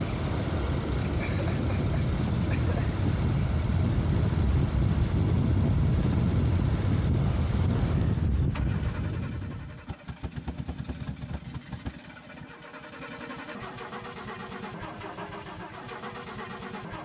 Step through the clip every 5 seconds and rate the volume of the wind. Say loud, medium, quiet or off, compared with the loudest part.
loud, loud, off, off.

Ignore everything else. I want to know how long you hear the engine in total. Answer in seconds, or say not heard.
17 s.